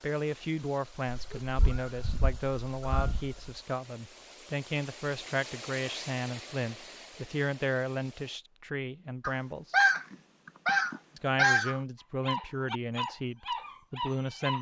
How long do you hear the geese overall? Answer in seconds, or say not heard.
5 s.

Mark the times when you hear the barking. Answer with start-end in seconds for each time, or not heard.
12.2-14.5.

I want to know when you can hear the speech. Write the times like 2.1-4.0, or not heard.
0.0-9.8, 11.2-14.5.